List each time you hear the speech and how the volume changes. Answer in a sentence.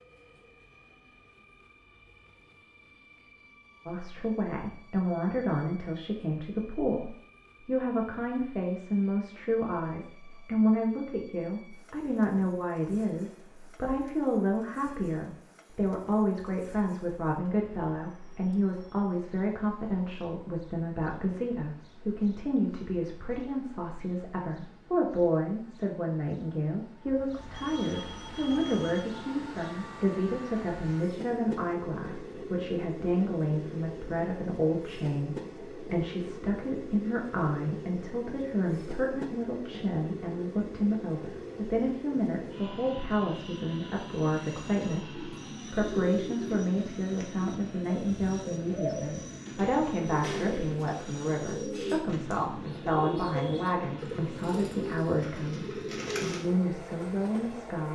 The speech can be heard from 3.9 to 57.8 s, at a steady volume.